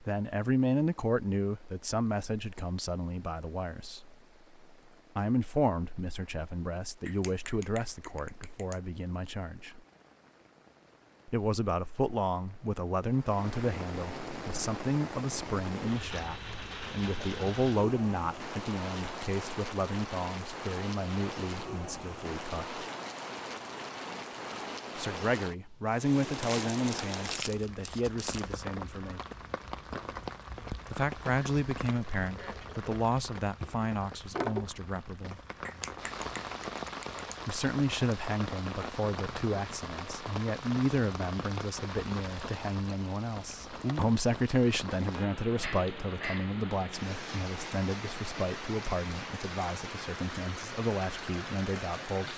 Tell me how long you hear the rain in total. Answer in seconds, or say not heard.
52 s.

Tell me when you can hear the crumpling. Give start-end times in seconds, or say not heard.
26.3-28.6.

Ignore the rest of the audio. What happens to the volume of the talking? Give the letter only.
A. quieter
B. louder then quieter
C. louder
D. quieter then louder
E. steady
E.